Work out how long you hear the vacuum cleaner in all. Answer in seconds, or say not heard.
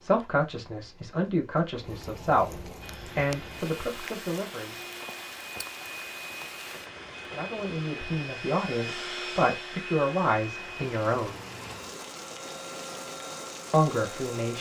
12 s.